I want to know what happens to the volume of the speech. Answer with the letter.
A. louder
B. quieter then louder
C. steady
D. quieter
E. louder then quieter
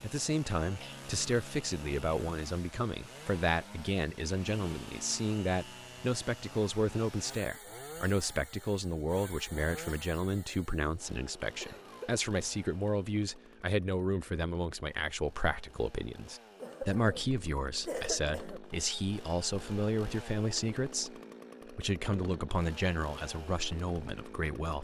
C.